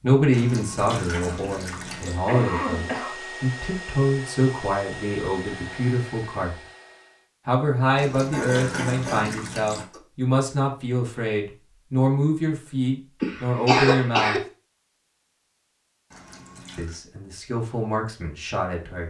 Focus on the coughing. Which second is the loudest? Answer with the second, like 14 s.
14 s.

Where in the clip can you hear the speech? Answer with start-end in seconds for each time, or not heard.
0.0-6.5, 7.5-14.4, 16.8-19.0.